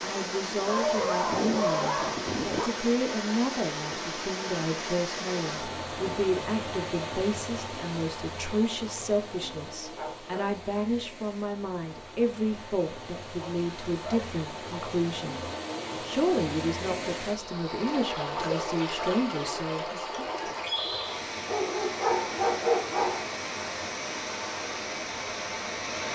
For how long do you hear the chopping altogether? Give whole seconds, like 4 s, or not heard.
not heard.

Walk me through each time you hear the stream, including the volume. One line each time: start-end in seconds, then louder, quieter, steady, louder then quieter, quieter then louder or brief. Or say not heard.
0.0-26.1 quieter then louder.